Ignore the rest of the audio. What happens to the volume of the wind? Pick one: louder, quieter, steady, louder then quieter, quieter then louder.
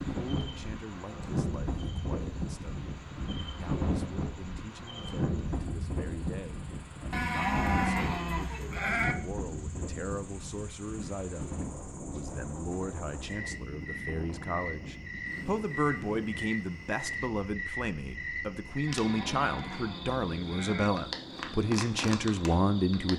quieter.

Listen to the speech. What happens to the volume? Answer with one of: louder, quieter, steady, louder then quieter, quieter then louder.
louder.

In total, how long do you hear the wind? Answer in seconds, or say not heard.
23 s.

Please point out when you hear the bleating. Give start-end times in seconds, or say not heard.
7.1-9.2, 18.9-20.9.